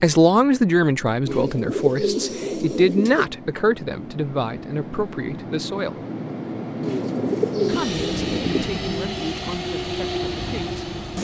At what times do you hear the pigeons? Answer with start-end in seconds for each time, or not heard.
1.2-3.2, 6.8-8.8.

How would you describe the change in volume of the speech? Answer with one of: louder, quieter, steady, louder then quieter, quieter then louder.
quieter.